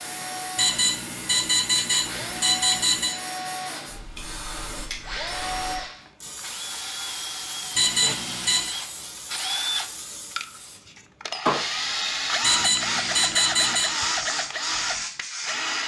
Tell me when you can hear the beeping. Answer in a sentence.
You can hear the beeping from 0.6 to 3.1 s, from 7.8 to 8.8 s and from 12.4 to 13.9 s.